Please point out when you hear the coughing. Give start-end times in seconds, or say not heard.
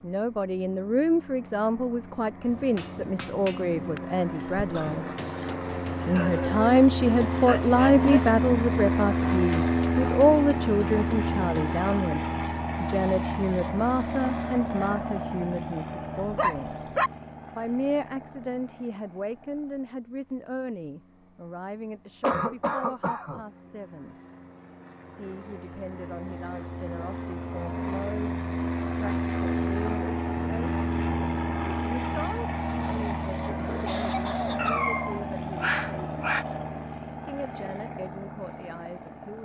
4.5-5.5, 22.2-23.4, 33.5-34.9.